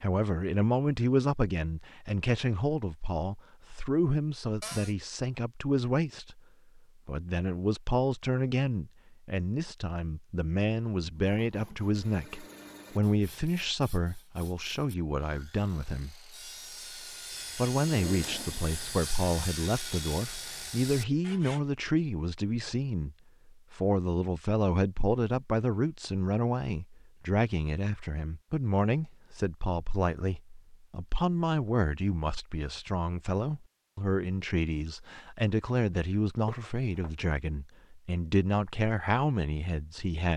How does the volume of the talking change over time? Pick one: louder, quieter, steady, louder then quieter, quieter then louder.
steady.